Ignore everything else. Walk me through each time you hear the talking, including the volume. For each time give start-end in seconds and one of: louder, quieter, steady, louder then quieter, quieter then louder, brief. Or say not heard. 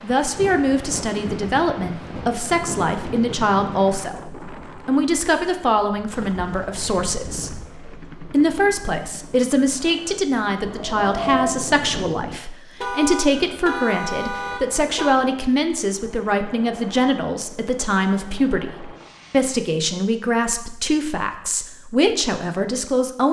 0.0-23.2 steady.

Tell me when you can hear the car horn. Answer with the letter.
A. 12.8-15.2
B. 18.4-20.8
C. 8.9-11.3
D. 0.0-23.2
A.